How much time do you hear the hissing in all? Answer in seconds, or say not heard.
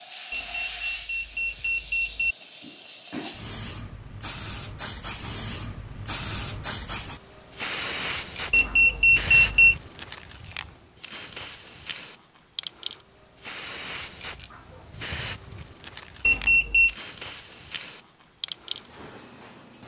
20 s.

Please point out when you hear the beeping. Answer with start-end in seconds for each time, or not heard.
0.3-2.4, 8.5-9.8, 16.2-16.9.